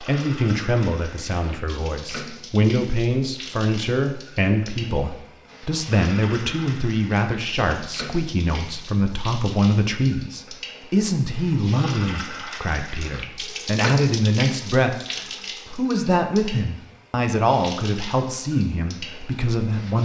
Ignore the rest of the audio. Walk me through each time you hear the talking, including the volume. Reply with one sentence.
You can hear the talking from 0.0 to 20.0 s, at a steady volume.